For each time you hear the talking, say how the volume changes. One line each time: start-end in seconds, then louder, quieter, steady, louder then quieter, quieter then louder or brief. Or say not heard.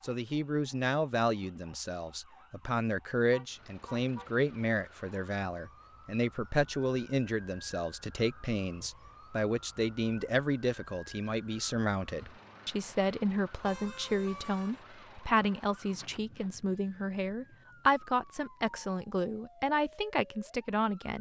0.0-21.1 steady.